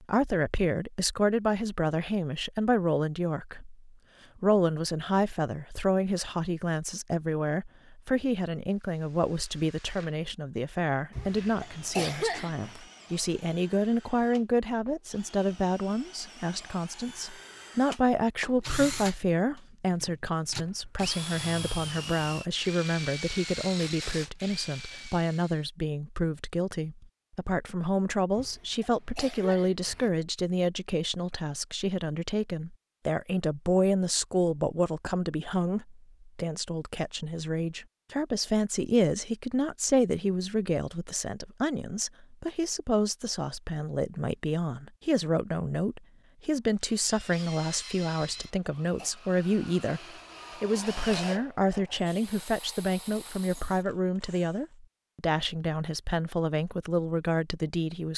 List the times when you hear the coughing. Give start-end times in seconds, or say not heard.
11.1-12.8, 28.4-30.1, 48.1-49.1.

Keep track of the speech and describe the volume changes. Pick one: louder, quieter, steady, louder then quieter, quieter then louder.
steady.